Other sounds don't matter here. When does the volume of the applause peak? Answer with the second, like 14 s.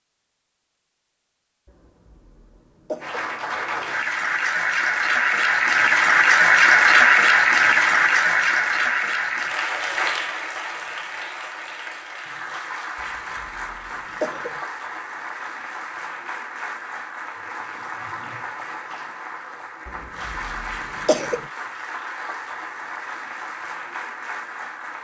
7 s.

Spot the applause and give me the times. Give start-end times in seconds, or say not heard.
3.0-24.9.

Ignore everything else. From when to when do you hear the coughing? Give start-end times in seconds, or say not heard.
1.6-3.3, 12.9-14.6, 19.9-21.4.